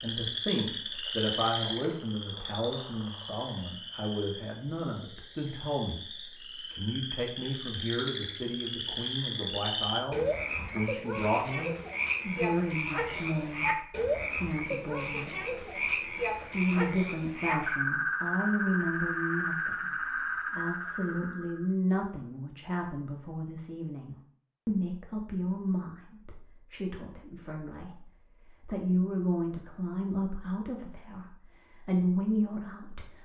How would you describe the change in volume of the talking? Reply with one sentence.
The volume of the talking stays about the same.